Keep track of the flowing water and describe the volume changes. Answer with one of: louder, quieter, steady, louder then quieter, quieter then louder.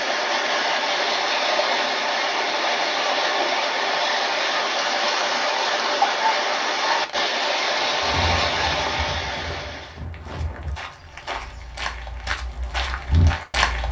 steady.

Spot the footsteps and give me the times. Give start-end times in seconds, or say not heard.
7.8-13.8.